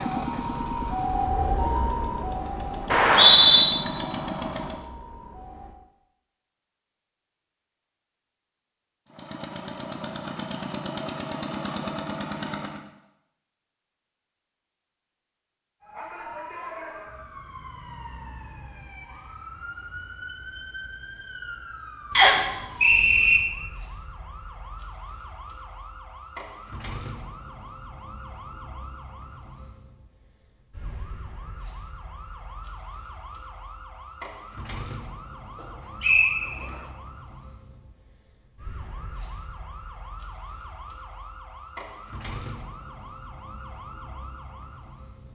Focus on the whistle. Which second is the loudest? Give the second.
3 s.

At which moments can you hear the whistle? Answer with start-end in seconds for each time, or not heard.
2.9-3.6, 22.1-23.4, 36.0-36.8.